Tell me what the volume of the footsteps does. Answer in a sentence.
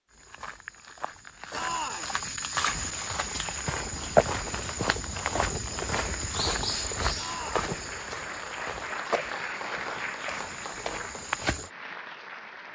The loudness of the footsteps goes up, then down.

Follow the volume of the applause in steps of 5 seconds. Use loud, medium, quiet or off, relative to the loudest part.
medium, loud, loud.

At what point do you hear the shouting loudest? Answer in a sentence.
The loudest moment of the shouting is at 2 seconds.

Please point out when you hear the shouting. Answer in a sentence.
The shouting can be heard from 1.5 to 2.1 s and from 7.2 to 7.6 s.